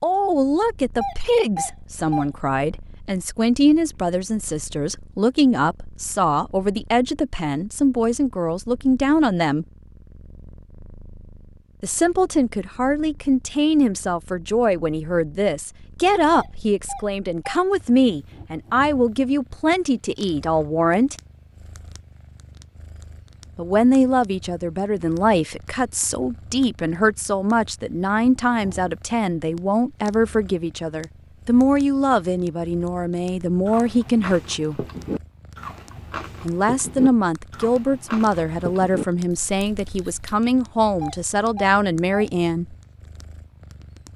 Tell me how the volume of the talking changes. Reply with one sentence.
The loudness of the talking stays about the same.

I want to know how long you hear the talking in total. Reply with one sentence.
The talking can be heard for 37 seconds in total.